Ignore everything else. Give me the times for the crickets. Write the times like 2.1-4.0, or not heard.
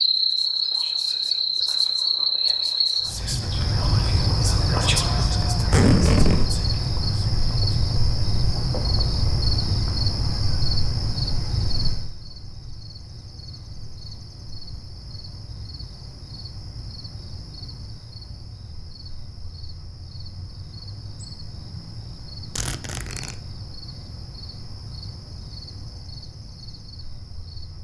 0.0-27.7.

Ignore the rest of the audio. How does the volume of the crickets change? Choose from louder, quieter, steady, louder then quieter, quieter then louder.
quieter.